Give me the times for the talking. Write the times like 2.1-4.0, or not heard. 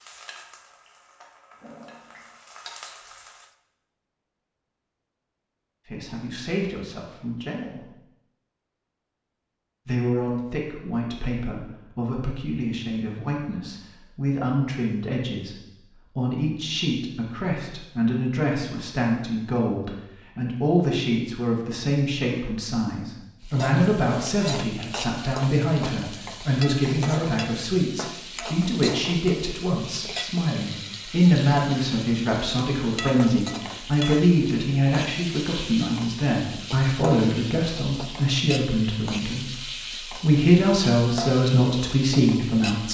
5.8-7.9, 9.8-15.6, 16.1-42.9.